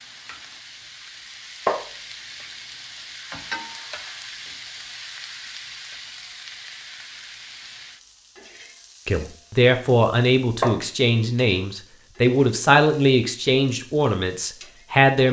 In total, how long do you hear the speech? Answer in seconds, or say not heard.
6 s.